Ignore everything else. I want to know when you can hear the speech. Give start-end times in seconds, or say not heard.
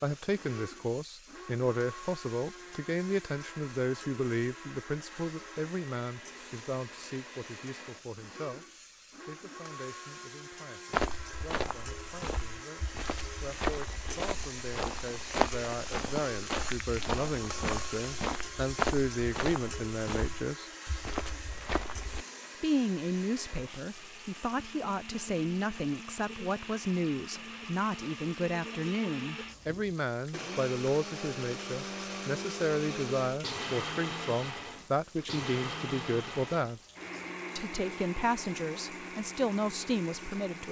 0.0-8.7, 9.2-20.7, 22.6-36.8, 37.5-40.6.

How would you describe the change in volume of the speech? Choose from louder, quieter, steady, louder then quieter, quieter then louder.
quieter then louder.